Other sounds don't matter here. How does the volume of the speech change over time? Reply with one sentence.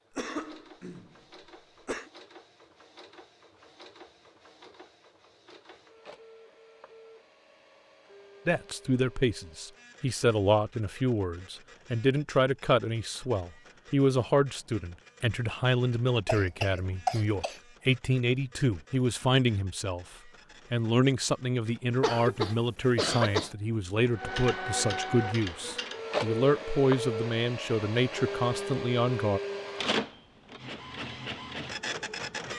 The loudness of the speech stays about the same.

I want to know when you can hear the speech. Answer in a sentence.
You can hear the speech from 8.4 to 20.1 s and from 20.7 to 29.4 s.